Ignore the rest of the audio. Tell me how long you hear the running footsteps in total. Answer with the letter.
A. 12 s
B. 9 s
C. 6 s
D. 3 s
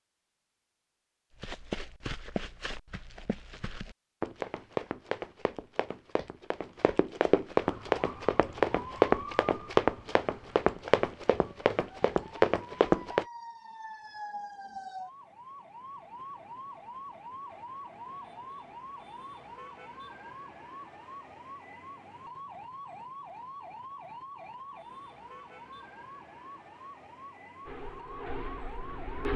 A.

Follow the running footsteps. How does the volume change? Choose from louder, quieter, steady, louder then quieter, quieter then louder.
louder.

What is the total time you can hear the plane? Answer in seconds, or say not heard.
2 s.